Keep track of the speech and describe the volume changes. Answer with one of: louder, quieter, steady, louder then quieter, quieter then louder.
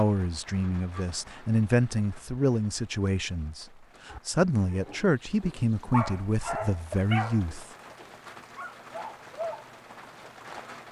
steady.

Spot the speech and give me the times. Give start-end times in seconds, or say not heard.
0.0-7.7.